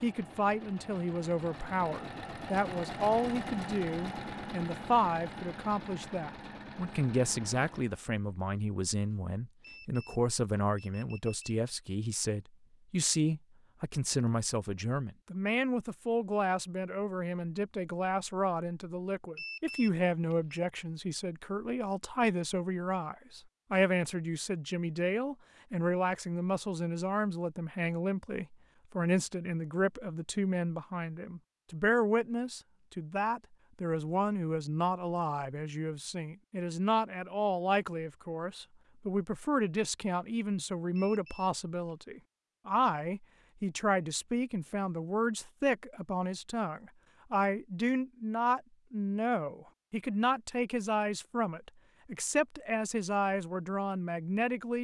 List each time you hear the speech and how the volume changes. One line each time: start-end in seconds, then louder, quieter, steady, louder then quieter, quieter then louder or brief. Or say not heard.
0.0-54.8 steady.